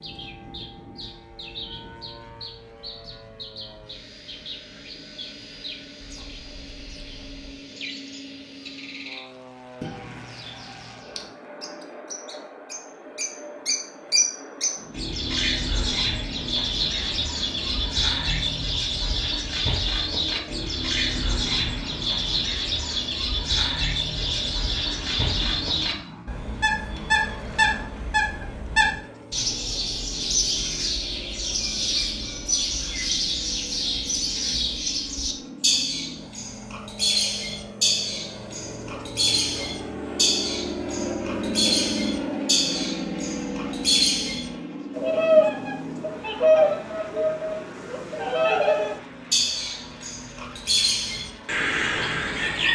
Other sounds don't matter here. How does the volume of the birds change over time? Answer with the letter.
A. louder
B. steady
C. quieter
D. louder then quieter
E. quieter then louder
A.